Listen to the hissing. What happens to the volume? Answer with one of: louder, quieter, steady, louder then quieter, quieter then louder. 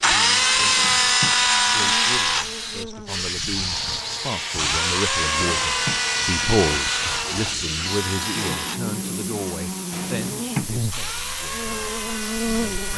quieter.